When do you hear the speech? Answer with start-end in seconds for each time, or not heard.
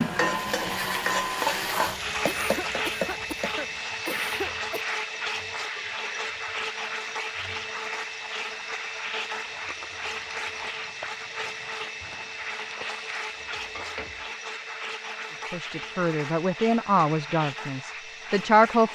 15.5-18.8.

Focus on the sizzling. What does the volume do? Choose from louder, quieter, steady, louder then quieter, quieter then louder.
quieter.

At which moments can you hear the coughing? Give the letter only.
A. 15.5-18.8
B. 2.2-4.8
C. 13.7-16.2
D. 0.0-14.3
B.